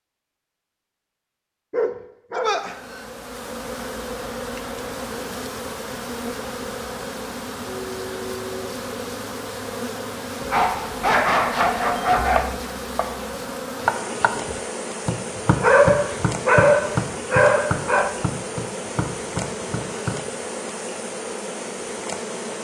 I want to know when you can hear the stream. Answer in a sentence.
The stream can't be heard in this clip.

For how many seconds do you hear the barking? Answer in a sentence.
You can hear the barking for 6 seconds altogether.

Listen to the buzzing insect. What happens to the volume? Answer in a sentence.
The loudness of the buzzing insect stays about the same.